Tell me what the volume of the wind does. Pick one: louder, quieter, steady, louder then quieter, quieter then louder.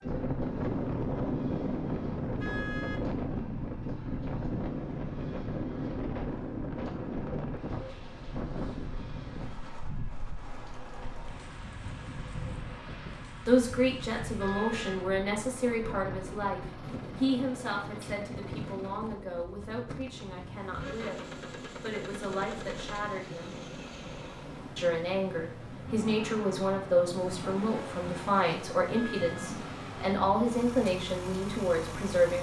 quieter.